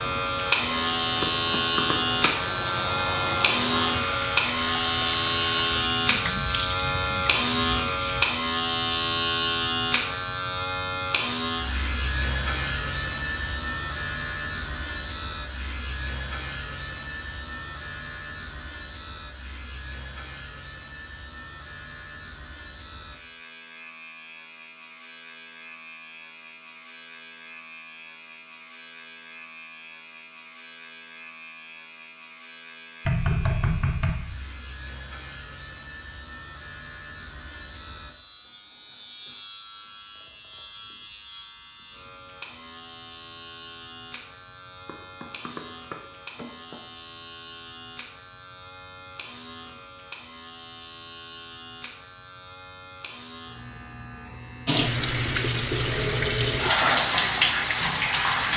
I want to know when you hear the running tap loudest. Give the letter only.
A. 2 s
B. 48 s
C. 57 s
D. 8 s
C.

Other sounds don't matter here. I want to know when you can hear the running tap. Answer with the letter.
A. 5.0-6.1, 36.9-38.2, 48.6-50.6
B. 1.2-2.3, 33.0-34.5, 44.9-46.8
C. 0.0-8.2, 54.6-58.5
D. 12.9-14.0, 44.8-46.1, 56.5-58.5
C.